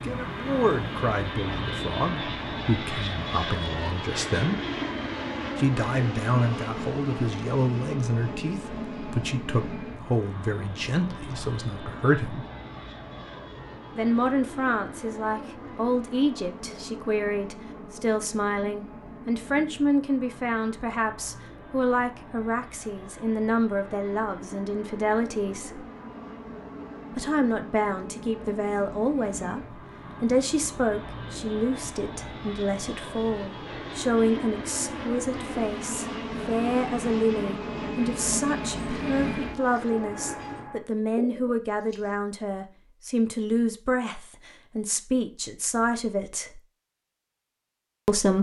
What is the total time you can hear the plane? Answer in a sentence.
You can hear the plane for 41 seconds altogether.